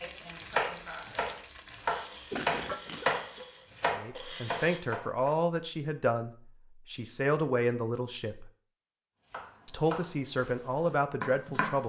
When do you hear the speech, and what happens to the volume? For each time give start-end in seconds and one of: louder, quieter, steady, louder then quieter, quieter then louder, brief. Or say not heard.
3.9-8.5 steady
9.7-11.8 brief.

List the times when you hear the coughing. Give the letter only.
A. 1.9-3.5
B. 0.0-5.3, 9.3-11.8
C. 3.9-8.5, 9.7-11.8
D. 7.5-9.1
A.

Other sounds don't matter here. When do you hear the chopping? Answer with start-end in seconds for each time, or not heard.
0.0-5.3, 9.3-11.8.